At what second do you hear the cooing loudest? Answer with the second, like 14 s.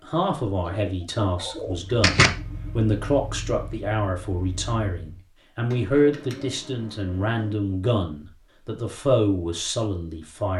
2 s.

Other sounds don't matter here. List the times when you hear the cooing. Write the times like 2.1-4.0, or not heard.
0.6-2.3, 5.7-7.5.